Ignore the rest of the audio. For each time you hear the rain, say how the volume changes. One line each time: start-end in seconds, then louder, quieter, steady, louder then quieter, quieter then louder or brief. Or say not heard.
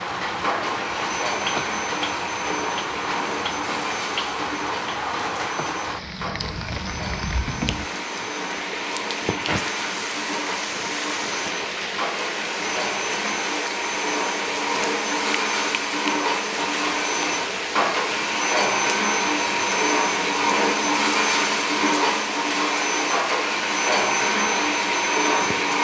0.0-25.7 steady.